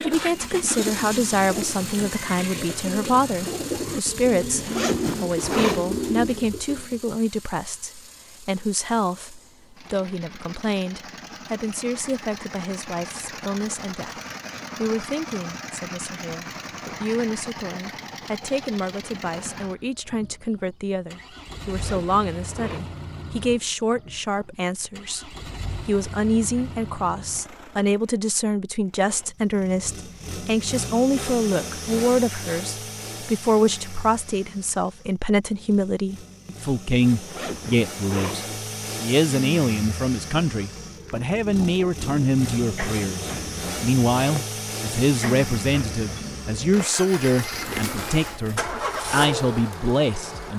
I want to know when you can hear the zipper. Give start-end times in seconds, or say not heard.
4.6-6.0, 21.6-23.0, 37.2-38.6.